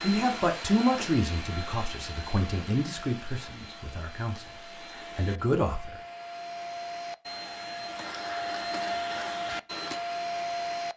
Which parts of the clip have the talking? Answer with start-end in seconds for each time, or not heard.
0.0-4.5, 5.2-6.0.